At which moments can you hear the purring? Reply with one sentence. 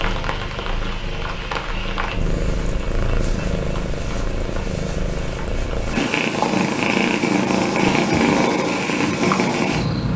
The purring can be heard from 0.0 to 10.1 s.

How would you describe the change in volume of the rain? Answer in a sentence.
The loudness of the rain goes down.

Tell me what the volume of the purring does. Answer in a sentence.
The loudness of the purring goes up.